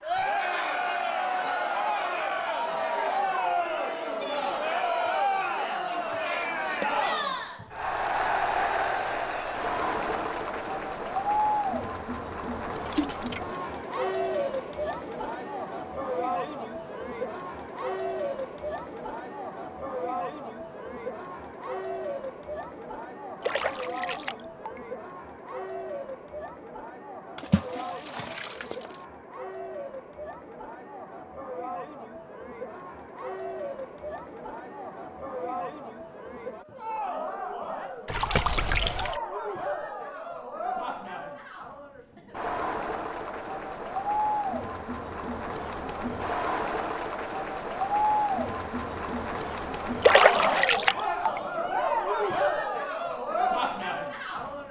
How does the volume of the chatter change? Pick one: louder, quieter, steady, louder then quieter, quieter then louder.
quieter then louder.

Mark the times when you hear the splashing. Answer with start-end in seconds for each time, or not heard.
6.7-7.3, 12.8-13.4, 23.4-24.8, 27.4-29.0, 38.0-39.2, 50.0-51.4.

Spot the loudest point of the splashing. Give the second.
50 s.